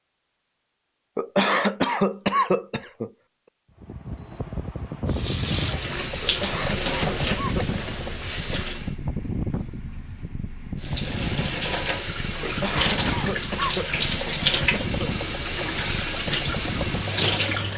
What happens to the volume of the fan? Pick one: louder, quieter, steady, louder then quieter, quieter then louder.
steady.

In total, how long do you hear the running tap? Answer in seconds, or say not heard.
11 s.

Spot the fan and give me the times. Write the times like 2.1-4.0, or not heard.
3.8-17.7.